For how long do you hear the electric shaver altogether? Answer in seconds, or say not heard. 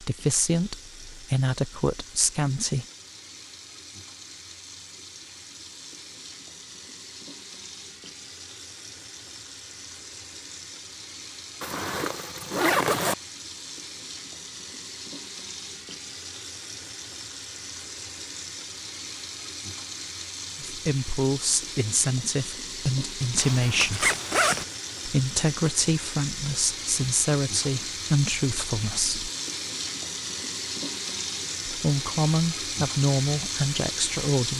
not heard.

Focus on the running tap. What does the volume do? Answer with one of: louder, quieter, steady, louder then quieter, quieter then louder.
louder.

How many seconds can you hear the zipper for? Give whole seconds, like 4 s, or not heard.
3 s.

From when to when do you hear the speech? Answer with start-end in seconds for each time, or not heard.
0.0-2.9, 20.6-24.1, 25.1-29.3, 31.6-34.5.